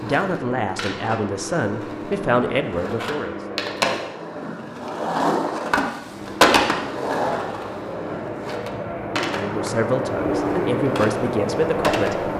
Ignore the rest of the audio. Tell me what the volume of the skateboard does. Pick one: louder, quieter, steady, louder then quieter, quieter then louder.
louder then quieter.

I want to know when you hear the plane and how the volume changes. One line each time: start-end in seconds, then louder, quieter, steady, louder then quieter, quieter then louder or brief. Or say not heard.
0.0-4.2 steady
6.0-12.3 louder.